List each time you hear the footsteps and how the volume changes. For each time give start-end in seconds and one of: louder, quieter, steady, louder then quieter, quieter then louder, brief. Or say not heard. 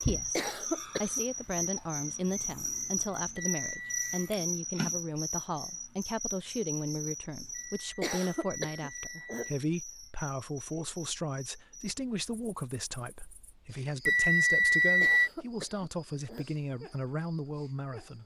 not heard.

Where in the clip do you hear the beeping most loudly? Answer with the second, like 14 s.
15 s.